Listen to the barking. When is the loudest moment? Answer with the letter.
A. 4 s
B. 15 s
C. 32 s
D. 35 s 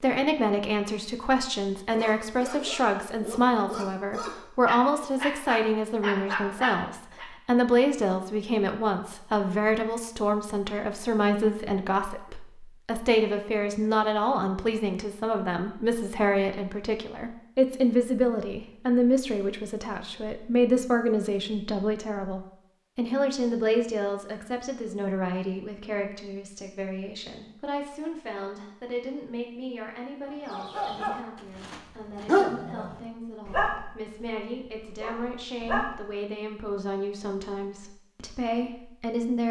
C.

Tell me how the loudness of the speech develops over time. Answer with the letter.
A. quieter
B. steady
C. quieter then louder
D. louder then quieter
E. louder
A.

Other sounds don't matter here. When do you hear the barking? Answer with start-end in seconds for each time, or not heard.
1.9-7.2, 30.3-36.0.